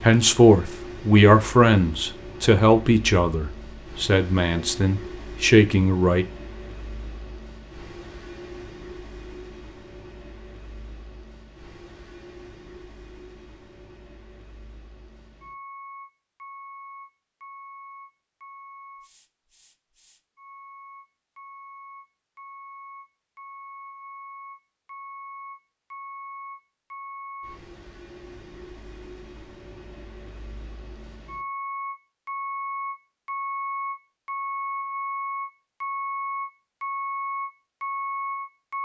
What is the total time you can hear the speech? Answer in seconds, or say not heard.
6 s.